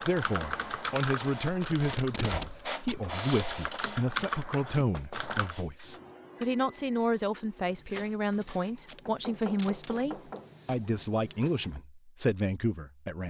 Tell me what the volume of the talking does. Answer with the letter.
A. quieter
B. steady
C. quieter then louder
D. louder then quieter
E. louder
B.